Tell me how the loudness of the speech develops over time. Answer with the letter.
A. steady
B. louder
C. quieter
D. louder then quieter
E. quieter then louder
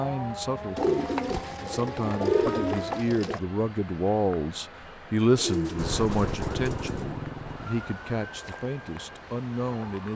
D.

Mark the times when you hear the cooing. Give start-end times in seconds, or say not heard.
0.8-3.4, 5.3-7.2.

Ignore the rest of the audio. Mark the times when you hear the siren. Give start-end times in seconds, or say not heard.
0.0-3.1, 5.8-10.1.